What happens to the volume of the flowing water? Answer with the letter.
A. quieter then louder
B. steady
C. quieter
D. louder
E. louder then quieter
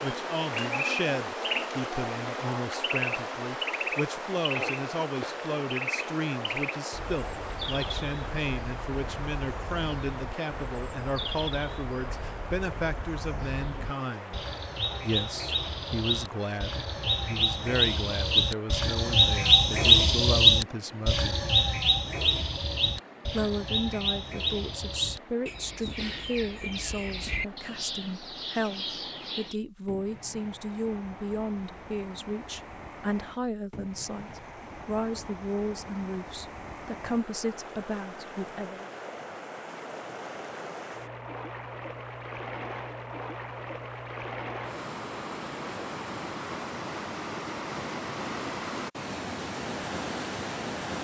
A.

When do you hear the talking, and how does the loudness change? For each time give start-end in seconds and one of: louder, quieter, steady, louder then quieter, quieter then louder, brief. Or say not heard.
0.0-21.4 steady
23.3-38.9 steady.